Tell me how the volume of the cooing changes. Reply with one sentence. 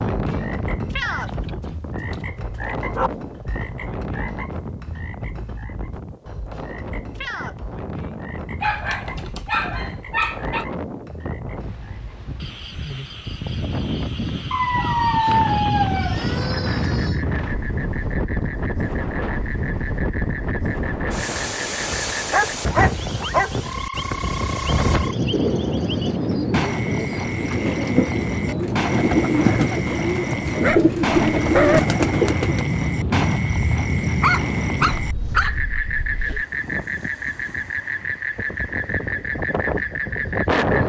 The loudness of the cooing goes up.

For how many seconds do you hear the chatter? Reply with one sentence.
The chatter can't be heard in this clip.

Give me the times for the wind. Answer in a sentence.
You can hear the wind from 0.0 to 40.8 s.